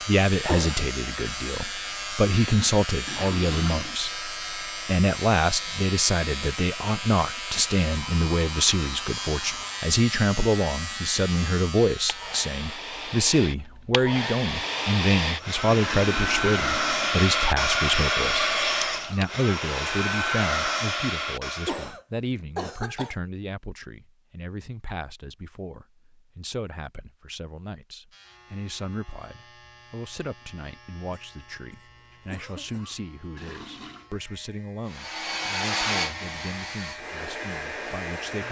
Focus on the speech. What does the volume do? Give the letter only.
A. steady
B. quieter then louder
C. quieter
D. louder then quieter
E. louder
C.